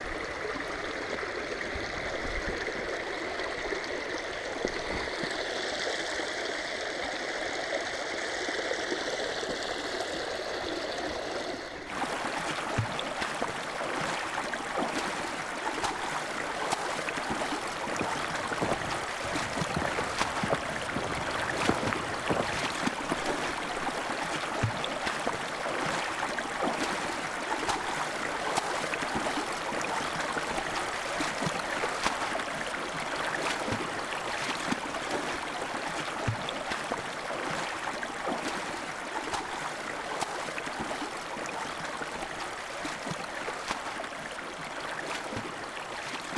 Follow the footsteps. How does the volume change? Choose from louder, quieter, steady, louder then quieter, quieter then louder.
steady.